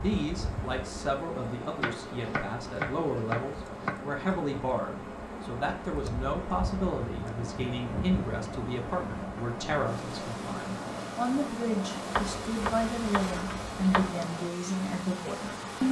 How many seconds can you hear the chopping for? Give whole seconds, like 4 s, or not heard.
4 s.